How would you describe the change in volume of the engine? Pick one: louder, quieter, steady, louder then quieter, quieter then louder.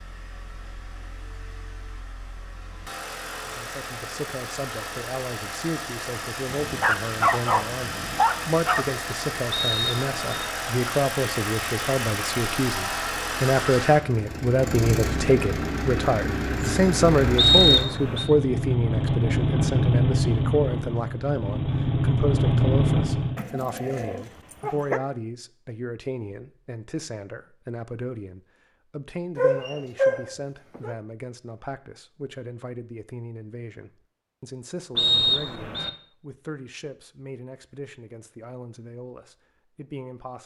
louder.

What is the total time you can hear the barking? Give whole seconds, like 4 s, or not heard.
6 s.